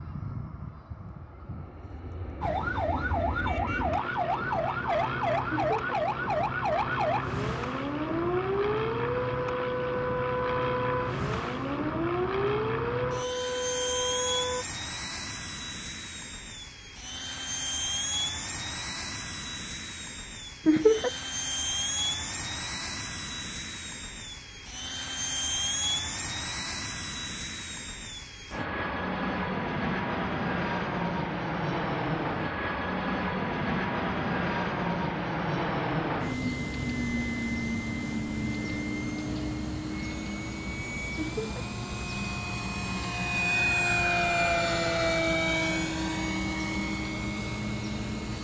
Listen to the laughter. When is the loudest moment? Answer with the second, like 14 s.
21 s.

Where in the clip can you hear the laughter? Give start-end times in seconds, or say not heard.
5.5-6.0, 20.6-21.1, 41.1-41.6.